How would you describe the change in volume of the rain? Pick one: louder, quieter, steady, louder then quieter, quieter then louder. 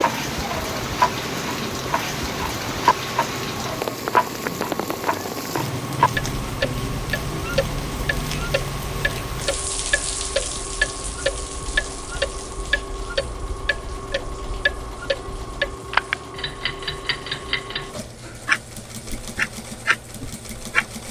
quieter.